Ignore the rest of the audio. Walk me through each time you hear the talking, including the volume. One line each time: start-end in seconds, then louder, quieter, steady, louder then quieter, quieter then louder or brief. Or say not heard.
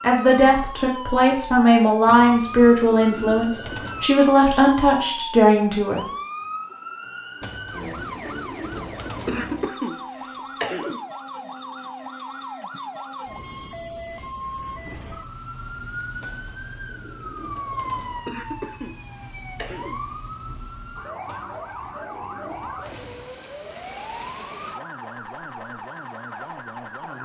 0.0-6.0 steady.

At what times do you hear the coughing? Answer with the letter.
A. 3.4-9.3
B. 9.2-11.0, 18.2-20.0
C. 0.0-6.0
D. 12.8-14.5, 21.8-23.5
B.